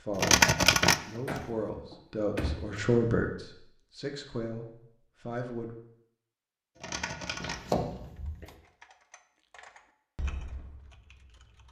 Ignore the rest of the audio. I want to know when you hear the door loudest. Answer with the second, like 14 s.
8 s.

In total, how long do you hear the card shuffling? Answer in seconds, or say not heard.
2 s.